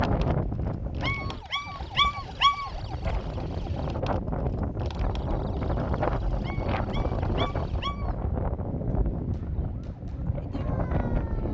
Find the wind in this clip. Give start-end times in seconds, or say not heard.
0.0-11.4.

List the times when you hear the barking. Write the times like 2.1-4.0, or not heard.
1.0-2.7, 6.4-8.2.